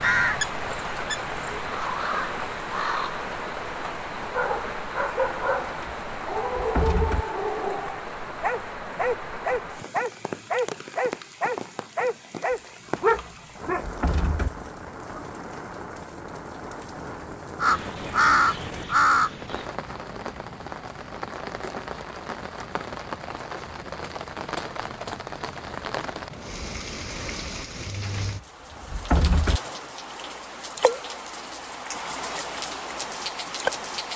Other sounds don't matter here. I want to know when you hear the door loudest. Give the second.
29 s.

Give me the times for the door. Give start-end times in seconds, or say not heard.
5.7-7.2, 12.5-14.5, 28.0-29.6.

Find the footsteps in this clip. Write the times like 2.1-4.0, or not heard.
not heard.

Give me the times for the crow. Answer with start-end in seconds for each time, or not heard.
0.0-3.2, 17.6-19.6.